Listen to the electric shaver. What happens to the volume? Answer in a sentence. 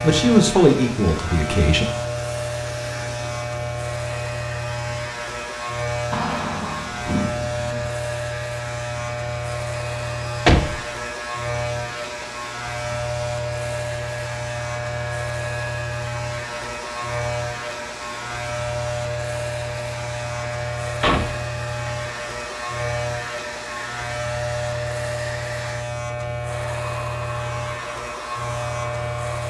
The loudness of the electric shaver stays about the same.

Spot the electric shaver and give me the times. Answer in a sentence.
You can hear the electric shaver from 0.0 to 29.4 s.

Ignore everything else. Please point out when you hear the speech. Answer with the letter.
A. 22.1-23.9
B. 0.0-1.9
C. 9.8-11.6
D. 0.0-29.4
B.